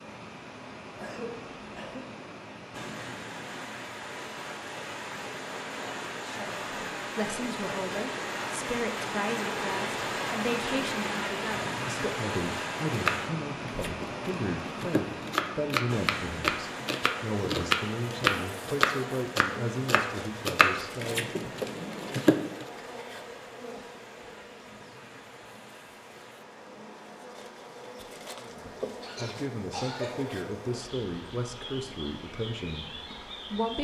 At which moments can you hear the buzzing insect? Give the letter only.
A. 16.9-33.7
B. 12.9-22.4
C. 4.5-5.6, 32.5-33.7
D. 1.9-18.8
A.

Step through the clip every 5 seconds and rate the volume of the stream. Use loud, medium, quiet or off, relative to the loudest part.
medium, loud, loud, medium, quiet, quiet, quiet.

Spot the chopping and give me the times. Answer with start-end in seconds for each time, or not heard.
12.9-22.4.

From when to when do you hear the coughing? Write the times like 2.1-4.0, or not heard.
0.9-2.0, 29.0-30.2.